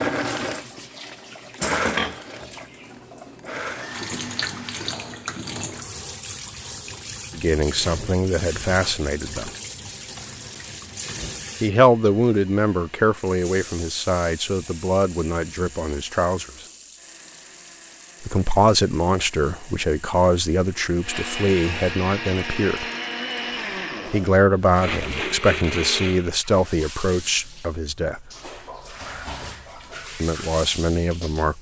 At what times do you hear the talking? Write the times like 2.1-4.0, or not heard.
7.3-9.5, 11.6-16.5, 18.2-22.9, 24.1-28.3, 30.2-31.5.